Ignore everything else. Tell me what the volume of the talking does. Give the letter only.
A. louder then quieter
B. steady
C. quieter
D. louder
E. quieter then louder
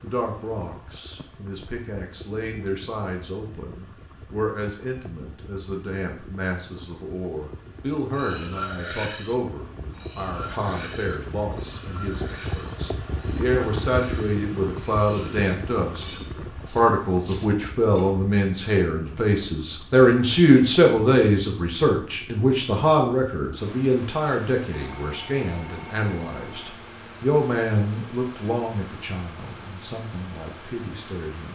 A.